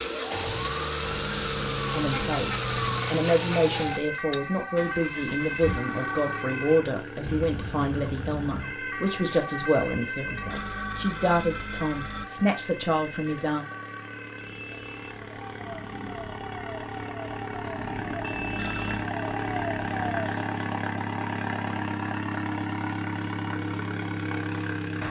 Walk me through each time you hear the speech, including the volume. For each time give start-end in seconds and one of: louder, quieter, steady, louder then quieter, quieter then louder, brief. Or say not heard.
1.9-13.7 steady.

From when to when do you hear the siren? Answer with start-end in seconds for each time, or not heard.
0.0-20.6.